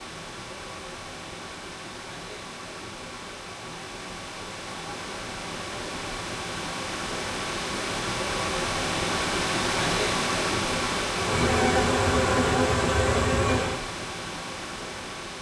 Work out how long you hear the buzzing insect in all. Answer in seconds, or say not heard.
3 s.